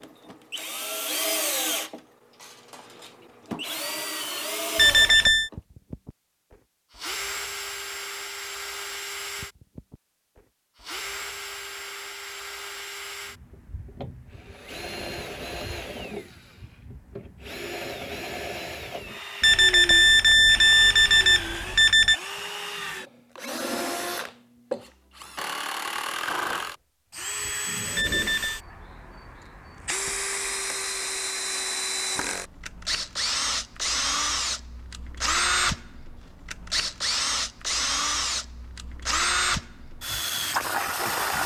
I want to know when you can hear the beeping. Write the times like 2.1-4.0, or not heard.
4.8-5.5, 19.4-22.2, 27.9-28.6.